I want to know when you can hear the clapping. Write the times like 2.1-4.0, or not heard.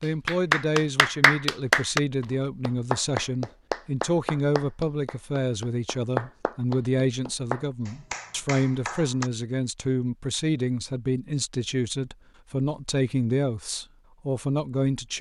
0.2-9.3.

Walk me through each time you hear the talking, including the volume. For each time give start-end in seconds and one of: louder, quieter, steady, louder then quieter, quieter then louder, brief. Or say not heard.
0.0-15.1 steady.